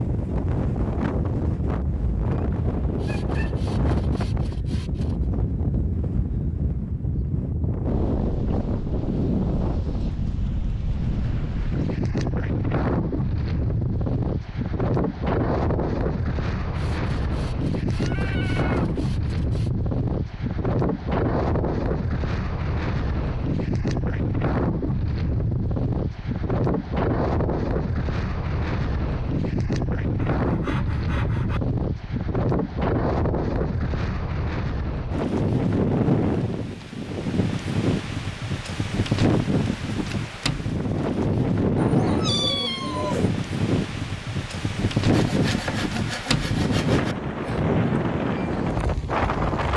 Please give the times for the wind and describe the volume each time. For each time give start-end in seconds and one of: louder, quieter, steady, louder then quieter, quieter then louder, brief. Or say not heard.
0.0-49.7 steady.